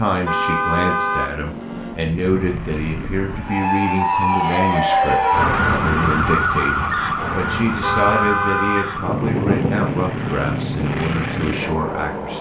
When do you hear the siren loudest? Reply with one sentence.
The volume of the siren peaks at 5 seconds.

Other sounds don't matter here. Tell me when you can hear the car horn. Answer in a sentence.
The car horn can be heard from 0.2 to 1.4 s and from 7.8 to 8.9 s.